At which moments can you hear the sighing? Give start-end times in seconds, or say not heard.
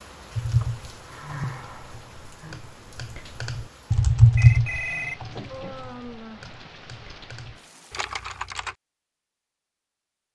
0.6-2.6, 5.5-6.8.